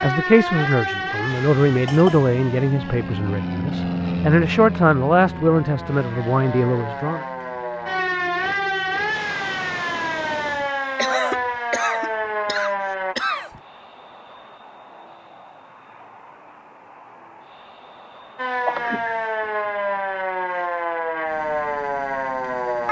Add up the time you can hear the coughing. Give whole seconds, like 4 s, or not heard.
4 s.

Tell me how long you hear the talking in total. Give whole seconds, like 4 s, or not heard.
7 s.